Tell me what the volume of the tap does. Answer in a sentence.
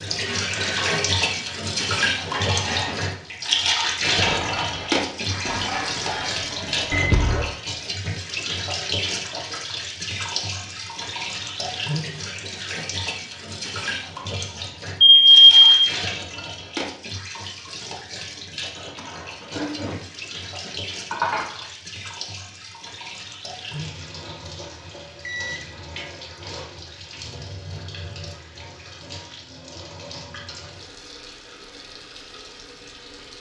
The volume of the tap goes down.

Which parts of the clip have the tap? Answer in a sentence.
You can hear the tap from 0.0 to 33.3 s.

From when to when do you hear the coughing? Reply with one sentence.
You can't hear the coughing here.